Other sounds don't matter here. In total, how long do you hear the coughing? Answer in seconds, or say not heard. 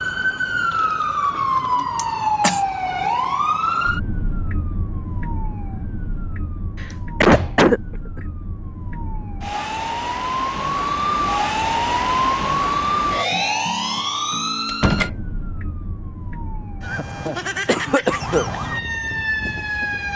3 s.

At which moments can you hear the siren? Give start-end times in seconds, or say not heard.
0.0-20.1.